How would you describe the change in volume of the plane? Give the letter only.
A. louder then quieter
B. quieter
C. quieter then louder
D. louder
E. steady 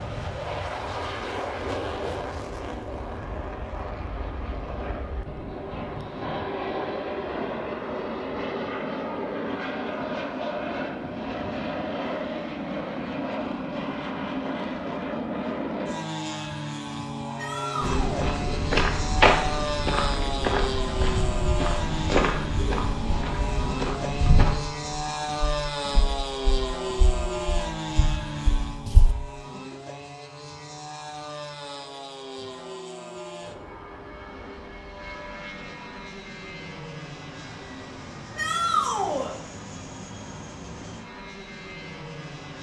B.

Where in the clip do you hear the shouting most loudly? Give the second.
39 s.